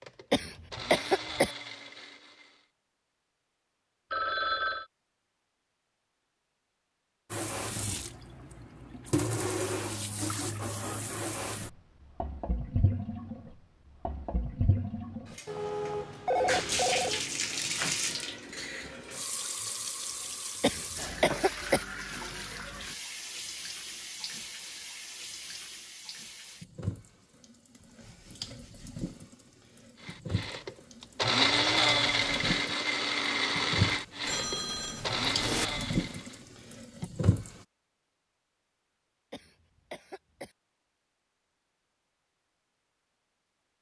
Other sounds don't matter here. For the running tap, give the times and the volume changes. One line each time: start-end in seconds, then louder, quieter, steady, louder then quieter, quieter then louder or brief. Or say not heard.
7.3-37.6 quieter then louder.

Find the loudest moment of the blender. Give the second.
32 s.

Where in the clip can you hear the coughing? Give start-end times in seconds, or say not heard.
0.3-1.5, 20.6-21.9, 39.3-40.5.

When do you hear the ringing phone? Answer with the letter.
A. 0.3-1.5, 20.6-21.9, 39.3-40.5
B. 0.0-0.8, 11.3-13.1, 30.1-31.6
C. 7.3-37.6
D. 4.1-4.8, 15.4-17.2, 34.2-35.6
D.